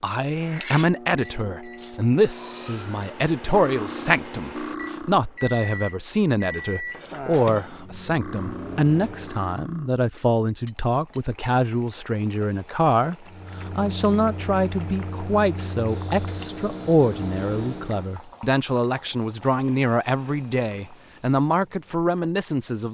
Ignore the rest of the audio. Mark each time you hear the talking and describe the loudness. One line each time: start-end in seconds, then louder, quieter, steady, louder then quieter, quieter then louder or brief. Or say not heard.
0.0-22.8 steady.